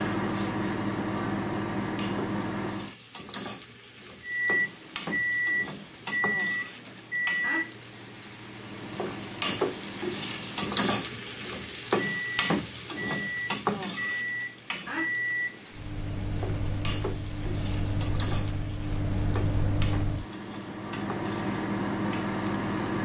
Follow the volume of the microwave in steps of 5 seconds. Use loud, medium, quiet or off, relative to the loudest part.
loud, loud, medium, loud, loud.